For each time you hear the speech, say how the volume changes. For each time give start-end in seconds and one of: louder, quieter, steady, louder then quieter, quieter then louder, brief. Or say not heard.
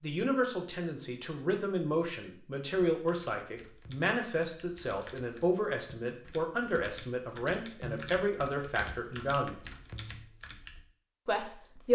0.0-9.6 steady
11.2-11.9 brief.